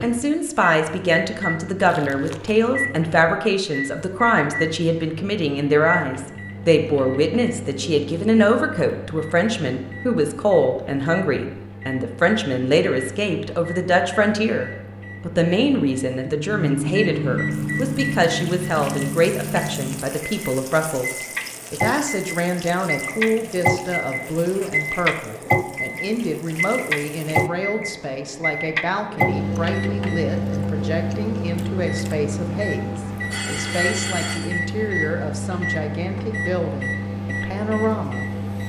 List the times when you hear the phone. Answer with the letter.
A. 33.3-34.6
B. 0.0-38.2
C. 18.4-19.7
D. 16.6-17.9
A.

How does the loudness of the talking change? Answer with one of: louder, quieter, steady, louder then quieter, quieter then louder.
quieter.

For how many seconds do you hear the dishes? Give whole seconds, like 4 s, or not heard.
not heard.